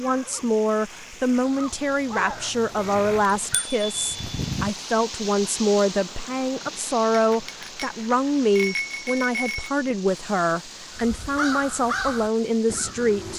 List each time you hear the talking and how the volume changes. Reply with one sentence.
The talking can be heard from 0.0 to 13.3 s, at a steady volume.